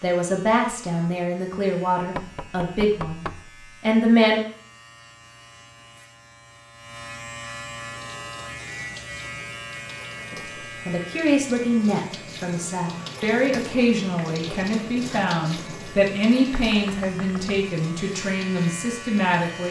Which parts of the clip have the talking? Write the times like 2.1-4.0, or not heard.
0.0-4.4, 10.3-19.6.